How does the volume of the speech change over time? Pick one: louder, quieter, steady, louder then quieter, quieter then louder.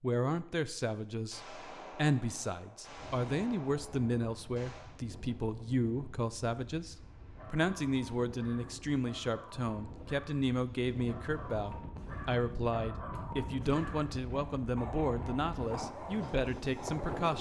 steady.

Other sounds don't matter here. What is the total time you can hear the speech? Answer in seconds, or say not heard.
17 s.